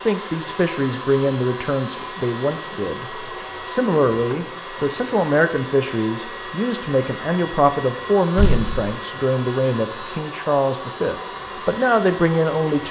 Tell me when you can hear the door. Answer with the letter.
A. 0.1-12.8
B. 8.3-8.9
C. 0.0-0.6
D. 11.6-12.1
B.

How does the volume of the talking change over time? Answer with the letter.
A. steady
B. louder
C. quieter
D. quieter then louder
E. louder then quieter
A.